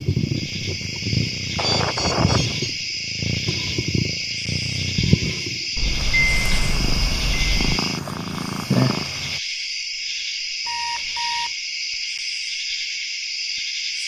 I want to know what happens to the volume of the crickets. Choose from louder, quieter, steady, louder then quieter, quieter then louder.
steady.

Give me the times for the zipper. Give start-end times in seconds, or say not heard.
not heard.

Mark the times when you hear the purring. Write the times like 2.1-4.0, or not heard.
0.0-9.4.